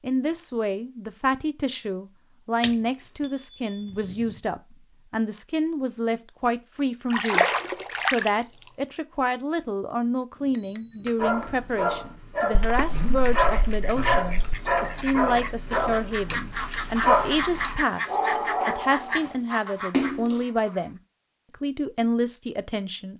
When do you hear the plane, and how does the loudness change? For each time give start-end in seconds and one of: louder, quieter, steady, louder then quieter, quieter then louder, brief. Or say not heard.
not heard.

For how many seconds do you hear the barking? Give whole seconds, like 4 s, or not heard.
8 s.